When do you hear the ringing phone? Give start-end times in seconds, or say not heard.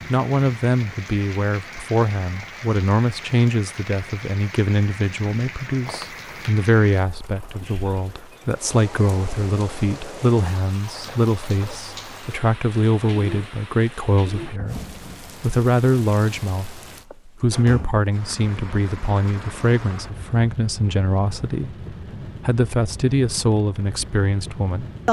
5.8-6.5.